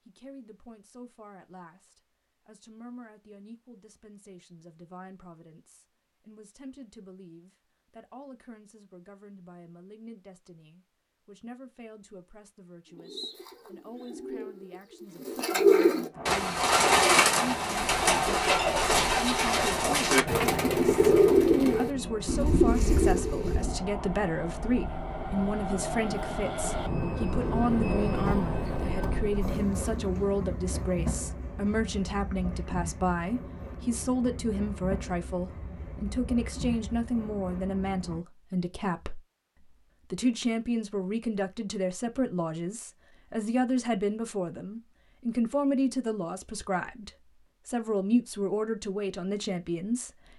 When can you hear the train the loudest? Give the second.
28 s.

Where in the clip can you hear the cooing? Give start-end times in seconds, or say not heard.
12.8-23.8.